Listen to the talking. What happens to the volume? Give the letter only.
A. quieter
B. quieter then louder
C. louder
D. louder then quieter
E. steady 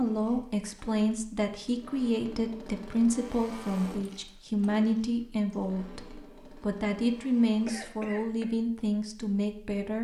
E.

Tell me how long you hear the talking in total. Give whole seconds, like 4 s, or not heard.
10 s.